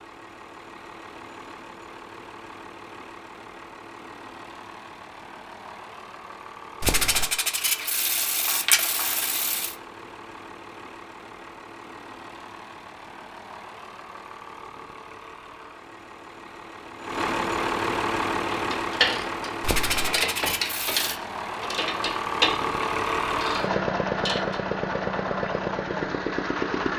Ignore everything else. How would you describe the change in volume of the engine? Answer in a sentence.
The loudness of the engine goes up.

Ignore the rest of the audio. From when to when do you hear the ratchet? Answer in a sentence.
You can hear the ratchet from 18.5 to 24.6 s.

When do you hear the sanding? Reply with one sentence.
You can hear the sanding from 6.8 to 9.8 s and from 19.6 to 21.2 s.